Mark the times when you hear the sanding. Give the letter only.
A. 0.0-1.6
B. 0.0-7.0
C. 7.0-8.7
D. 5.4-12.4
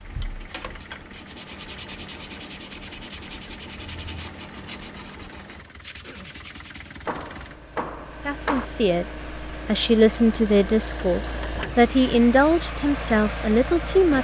B.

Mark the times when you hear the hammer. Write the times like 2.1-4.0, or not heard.
7.0-8.7.